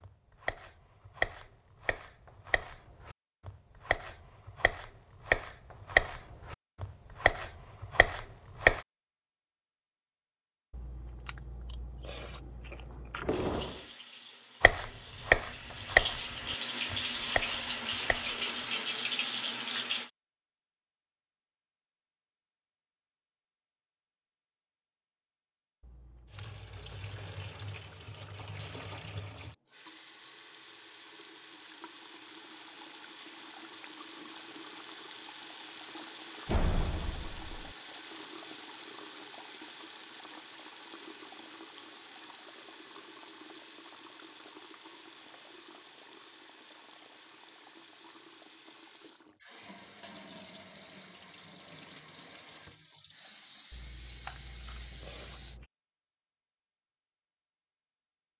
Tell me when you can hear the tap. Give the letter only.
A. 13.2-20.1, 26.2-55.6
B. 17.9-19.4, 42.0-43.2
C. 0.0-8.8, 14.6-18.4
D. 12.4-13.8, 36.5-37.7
A.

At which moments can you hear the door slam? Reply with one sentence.
You can hear the door slam from 12.4 to 13.8 s and from 36.5 to 37.7 s.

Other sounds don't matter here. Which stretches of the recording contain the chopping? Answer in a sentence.
You can hear the chopping from 0.0 to 8.8 s and from 14.6 to 18.4 s.